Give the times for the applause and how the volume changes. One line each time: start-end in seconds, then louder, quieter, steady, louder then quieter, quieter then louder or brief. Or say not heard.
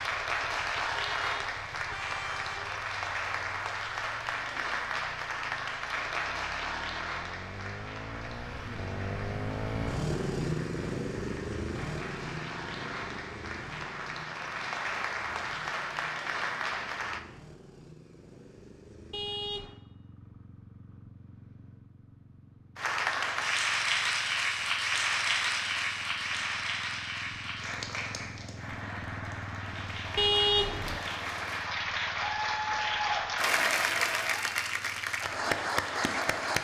0.0-17.2 quieter then louder
22.8-36.5 quieter then louder.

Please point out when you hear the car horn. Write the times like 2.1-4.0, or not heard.
1.0-2.9, 19.1-19.8, 30.1-31.0.